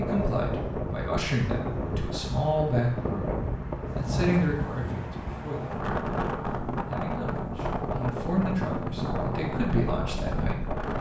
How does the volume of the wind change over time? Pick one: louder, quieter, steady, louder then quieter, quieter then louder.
steady.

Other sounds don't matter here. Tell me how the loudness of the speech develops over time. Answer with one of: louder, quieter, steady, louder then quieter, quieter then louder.
steady.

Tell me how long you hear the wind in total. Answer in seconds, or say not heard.
11 s.